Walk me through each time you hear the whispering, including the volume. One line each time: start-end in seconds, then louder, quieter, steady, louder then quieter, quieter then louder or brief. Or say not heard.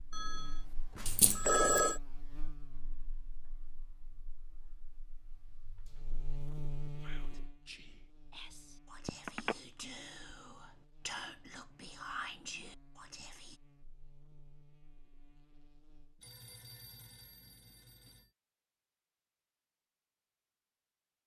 7.0-13.6 louder.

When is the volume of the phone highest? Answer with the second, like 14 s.
2 s.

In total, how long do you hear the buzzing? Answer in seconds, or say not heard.
16 s.